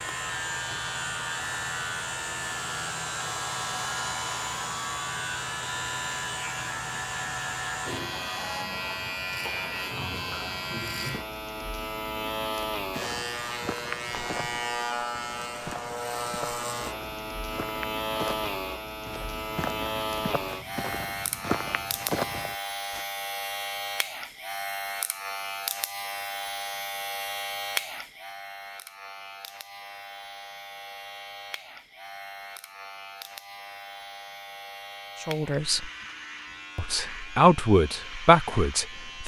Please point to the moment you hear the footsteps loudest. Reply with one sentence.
The volume of the footsteps peaks at 22 seconds.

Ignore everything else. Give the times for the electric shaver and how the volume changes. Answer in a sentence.
The electric shaver can be heard from 0.0 to 39.2 s, getting quieter.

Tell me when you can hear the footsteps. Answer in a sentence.
You can hear the footsteps from 12.8 to 23.1 s.